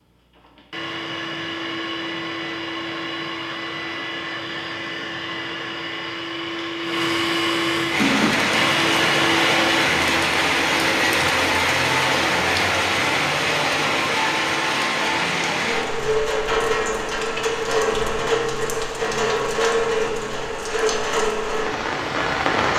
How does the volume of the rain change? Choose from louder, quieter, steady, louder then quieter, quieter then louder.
steady.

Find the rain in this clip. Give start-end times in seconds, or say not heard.
7.8-22.7.